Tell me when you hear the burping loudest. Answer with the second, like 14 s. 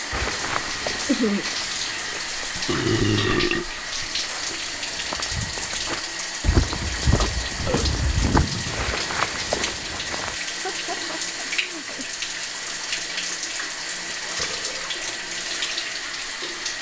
3 s.